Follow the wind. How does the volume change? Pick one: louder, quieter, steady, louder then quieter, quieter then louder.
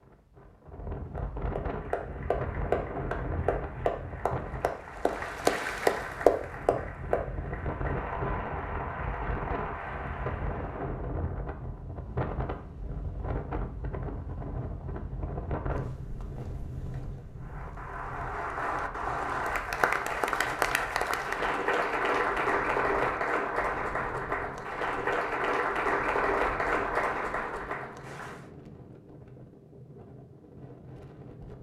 quieter.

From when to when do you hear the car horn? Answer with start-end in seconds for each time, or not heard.
not heard.